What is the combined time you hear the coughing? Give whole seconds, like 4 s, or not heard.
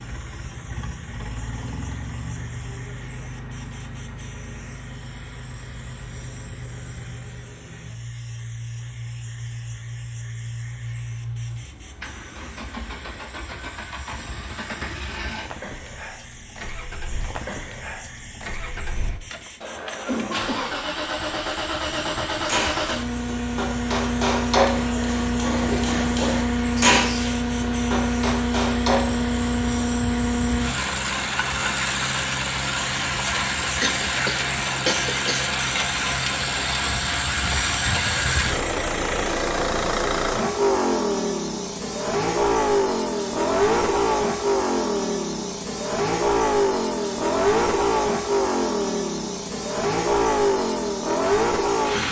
3 s.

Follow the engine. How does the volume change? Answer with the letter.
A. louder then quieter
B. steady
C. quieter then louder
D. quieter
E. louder
E.